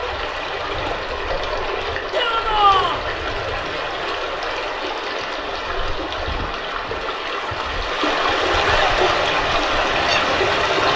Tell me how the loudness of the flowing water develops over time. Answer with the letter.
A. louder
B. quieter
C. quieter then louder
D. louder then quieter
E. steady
A.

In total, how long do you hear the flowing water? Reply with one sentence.
You can hear the flowing water for 11 seconds altogether.